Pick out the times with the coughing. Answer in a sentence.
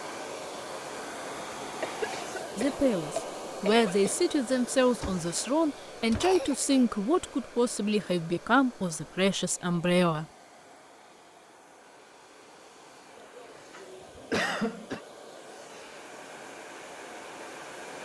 You can hear the coughing from 1.8 to 4.2 s, from 6.2 to 6.8 s and from 13.2 to 15.0 s.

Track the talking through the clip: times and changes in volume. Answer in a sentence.
You can hear the talking from 2.5 to 10.2 s, at a steady volume.